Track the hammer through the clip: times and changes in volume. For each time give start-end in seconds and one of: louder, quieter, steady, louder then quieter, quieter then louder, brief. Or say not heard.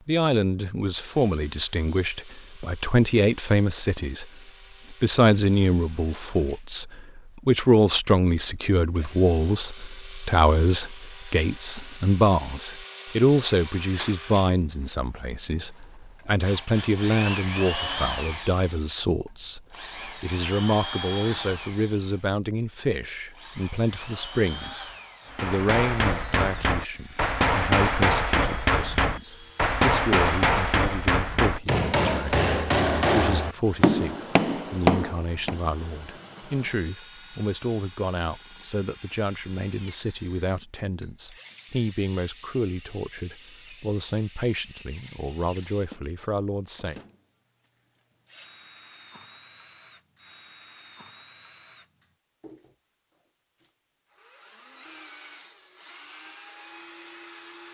25.2-35.6 steady.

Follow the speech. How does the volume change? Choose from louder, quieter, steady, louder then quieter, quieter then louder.
quieter.